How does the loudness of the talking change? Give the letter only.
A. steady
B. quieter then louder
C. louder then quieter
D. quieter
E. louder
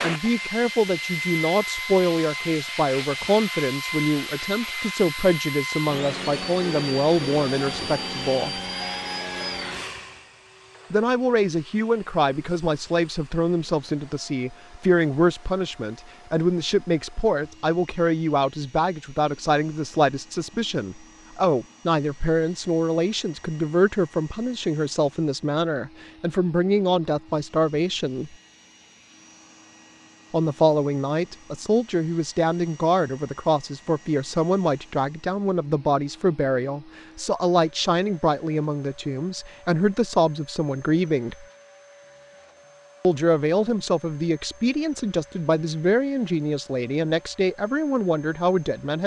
A.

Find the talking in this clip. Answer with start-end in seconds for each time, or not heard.
0.0-8.6, 10.9-28.4, 30.3-41.5, 43.0-49.0.